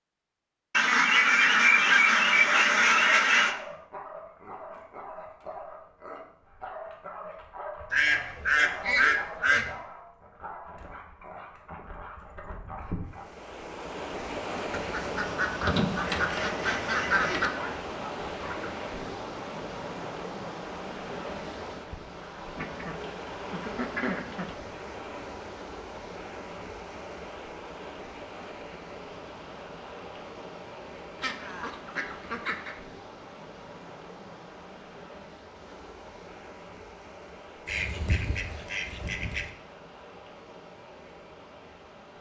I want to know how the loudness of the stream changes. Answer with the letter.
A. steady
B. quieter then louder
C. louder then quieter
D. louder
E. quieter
E.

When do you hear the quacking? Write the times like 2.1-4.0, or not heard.
0.7-3.5, 7.9-9.7, 14.7-17.5, 22.6-24.6, 31.2-32.8, 37.6-39.5.